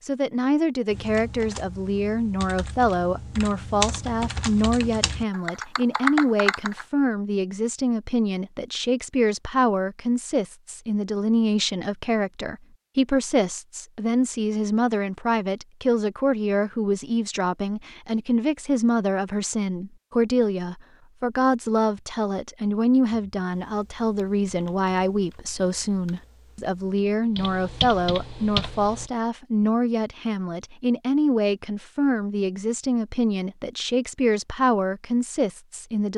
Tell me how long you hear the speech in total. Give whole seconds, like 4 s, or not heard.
36 s.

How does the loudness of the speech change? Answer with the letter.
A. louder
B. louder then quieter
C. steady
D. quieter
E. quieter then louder
C.